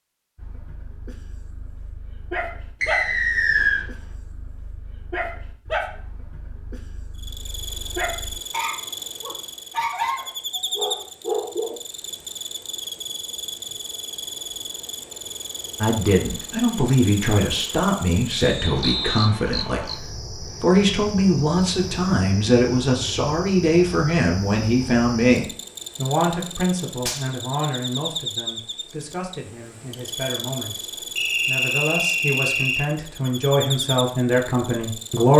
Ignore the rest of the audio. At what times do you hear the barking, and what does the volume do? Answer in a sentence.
You can hear the barking from 0.3 to 11.8 s, getting louder.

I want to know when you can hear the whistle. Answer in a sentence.
You can hear the whistle from 2.8 to 3.9 s, from 18.4 to 19.3 s and from 31.1 to 32.9 s.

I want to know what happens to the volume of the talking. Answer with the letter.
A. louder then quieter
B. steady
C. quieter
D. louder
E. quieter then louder
E.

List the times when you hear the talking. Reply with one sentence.
You can hear the talking from 15.8 to 35.3 s.